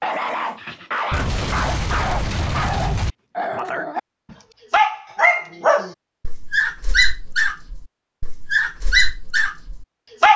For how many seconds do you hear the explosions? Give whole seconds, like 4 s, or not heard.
2 s.